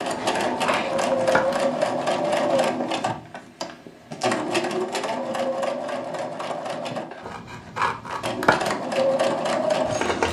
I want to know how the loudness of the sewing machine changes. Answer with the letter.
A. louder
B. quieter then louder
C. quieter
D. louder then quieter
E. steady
B.